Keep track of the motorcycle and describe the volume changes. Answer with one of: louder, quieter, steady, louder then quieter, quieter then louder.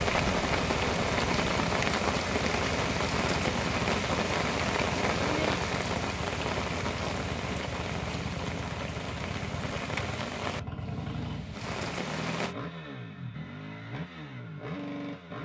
steady.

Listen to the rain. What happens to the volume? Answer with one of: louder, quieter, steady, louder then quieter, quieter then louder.
quieter.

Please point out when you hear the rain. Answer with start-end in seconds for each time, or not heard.
0.0-12.6.